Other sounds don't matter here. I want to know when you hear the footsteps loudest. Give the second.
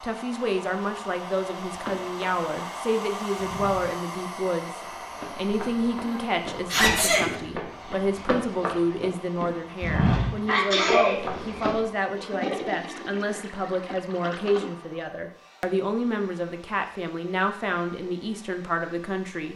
10 s.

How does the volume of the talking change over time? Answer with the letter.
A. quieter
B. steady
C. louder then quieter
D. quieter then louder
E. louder
B.